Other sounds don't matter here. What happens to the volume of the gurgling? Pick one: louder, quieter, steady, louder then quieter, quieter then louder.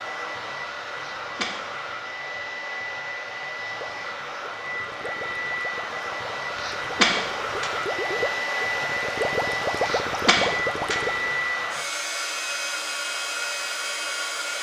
louder.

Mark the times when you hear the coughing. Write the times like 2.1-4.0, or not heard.
0.9-1.6, 6.5-7.7, 9.8-11.3.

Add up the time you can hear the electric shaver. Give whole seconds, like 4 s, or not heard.
not heard.